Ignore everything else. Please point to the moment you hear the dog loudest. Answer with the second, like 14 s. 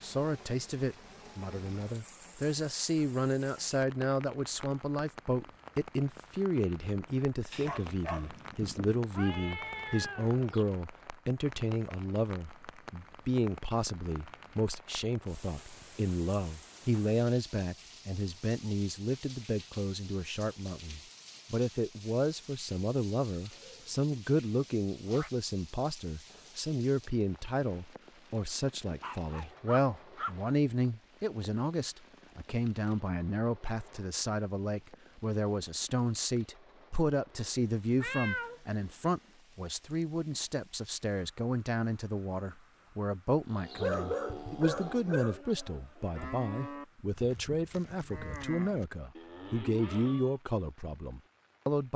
44 s.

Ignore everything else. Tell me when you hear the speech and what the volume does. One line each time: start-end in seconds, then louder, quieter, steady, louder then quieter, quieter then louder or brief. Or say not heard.
0.0-51.9 steady.